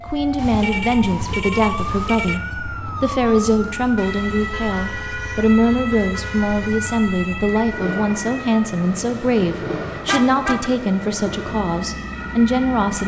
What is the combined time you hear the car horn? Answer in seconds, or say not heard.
6 s.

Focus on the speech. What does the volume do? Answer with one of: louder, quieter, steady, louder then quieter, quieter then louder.
steady.